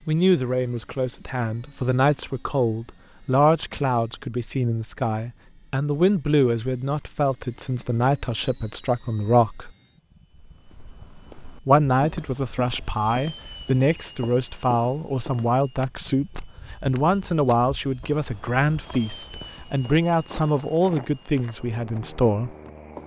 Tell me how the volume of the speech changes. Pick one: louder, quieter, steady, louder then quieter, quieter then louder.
steady.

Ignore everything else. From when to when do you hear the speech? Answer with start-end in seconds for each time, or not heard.
0.1-9.7, 11.7-22.6.